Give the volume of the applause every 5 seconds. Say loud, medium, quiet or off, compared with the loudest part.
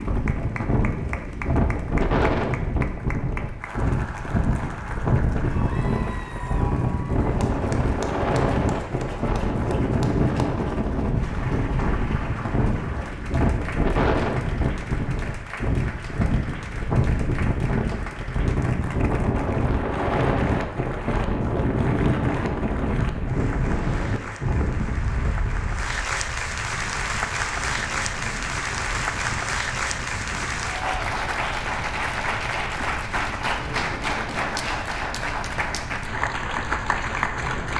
medium, medium, medium, medium, medium, loud, loud, loud.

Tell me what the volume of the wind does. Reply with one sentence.
The volume of the wind goes down.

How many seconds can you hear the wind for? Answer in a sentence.
The wind can be heard for 38 seconds in total.